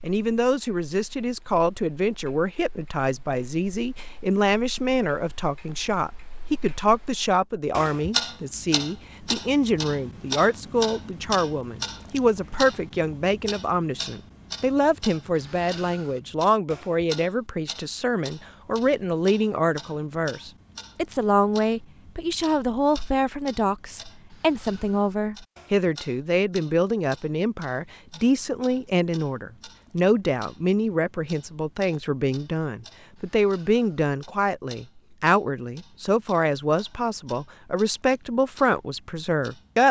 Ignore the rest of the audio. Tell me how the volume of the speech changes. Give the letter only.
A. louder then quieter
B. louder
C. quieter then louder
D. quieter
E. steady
E.